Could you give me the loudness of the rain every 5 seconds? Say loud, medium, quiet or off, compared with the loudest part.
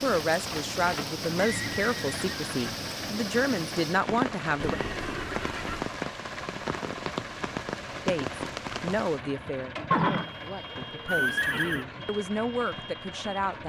loud, loud, off.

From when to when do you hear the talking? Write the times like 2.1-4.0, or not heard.
0.0-4.8, 8.1-13.6.